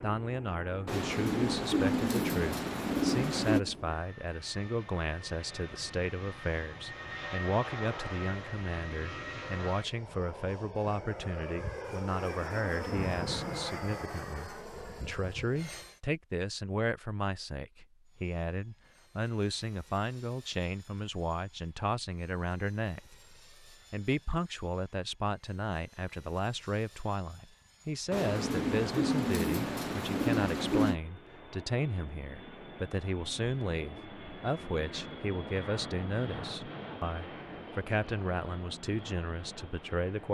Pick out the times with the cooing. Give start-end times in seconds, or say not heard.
0.8-3.6, 28.1-31.0.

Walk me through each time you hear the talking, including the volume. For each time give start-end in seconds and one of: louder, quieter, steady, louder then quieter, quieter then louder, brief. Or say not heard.
0.0-40.2 steady.